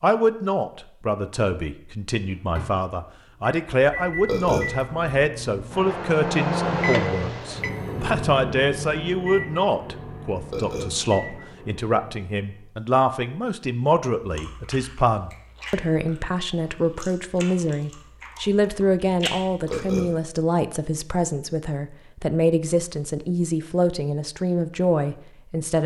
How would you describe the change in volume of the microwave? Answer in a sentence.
The volume of the microwave goes up, then down.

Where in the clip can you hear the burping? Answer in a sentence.
The burping can be heard from 4.2 to 4.7 s, from 10.5 to 10.9 s and from 19.6 to 20.1 s.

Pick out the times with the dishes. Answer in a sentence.
The dishes can't be heard in this clip.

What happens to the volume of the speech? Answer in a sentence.
The volume of the speech stays about the same.